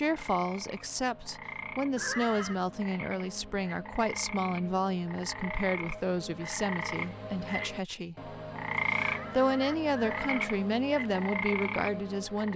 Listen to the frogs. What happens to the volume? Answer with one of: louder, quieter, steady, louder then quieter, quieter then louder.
louder.